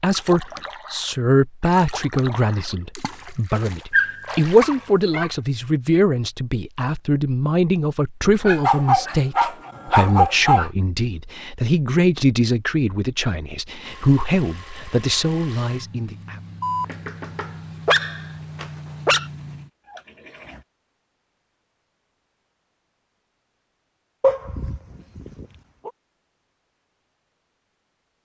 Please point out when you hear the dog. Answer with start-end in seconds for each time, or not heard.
3.9-5.3, 8.4-10.7, 16.6-19.2, 24.2-25.9.